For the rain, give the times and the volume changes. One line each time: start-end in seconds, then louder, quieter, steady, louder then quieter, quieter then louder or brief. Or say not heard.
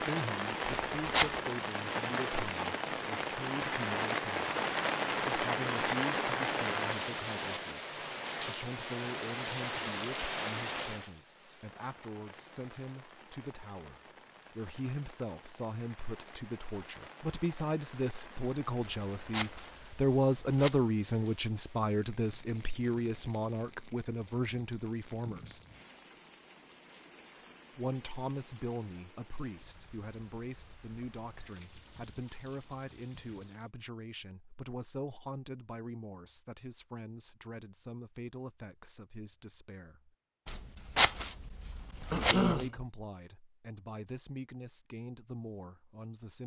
0.0-33.7 quieter.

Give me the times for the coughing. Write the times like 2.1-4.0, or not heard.
42.1-42.8.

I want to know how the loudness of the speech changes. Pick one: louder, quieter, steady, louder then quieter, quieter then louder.
louder then quieter.